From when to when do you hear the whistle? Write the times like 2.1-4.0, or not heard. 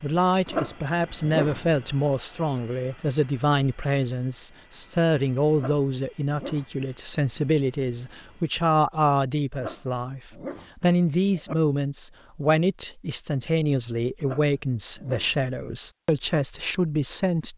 not heard.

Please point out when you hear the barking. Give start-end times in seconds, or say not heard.
0.5-1.8, 5.5-6.9, 9.6-11.6, 14.2-15.5.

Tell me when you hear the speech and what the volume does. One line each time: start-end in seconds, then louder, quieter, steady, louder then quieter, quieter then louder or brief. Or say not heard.
0.0-17.5 steady.